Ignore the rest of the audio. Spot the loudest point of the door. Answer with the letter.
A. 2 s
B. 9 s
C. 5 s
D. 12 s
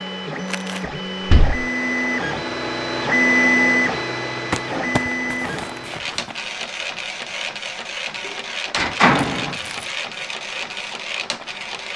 B.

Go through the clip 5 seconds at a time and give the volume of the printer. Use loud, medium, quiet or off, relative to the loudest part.
loud, medium, medium.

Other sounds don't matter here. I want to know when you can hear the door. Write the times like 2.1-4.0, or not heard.
0.8-1.6, 8.2-9.6.